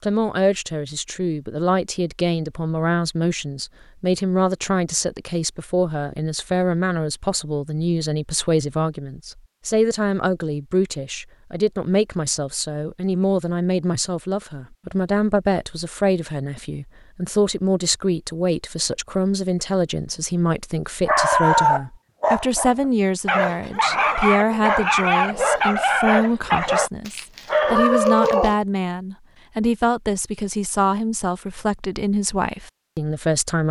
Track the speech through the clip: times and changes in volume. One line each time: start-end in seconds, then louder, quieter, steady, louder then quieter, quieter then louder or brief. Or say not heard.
0.0-33.6 steady.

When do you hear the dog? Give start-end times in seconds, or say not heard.
21.1-28.6.